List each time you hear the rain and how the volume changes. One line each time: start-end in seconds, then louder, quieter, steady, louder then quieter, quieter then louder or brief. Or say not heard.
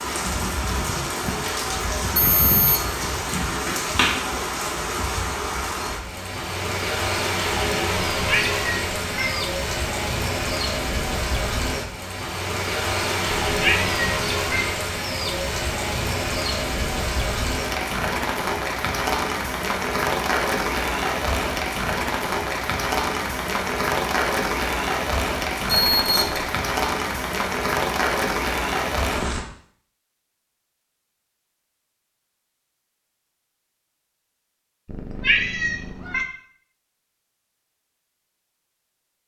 0.0-29.4 steady.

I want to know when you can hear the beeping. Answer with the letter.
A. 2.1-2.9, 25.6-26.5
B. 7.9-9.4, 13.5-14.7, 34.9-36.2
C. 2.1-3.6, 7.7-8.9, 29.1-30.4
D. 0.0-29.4
A.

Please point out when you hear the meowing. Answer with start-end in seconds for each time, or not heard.
7.9-9.4, 13.5-14.7, 34.9-36.2.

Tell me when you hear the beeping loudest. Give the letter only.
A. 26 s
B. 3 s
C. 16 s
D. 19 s
A.